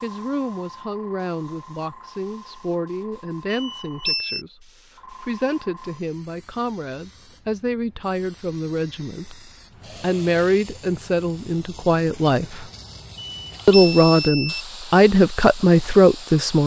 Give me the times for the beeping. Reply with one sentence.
The beeping can be heard from 3.5 to 4.5 s and from 13.2 to 14.7 s.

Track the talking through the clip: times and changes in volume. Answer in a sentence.
The talking can be heard from 0.0 to 12.7 s, getting louder; and briefly from 13.7 to 16.6 s.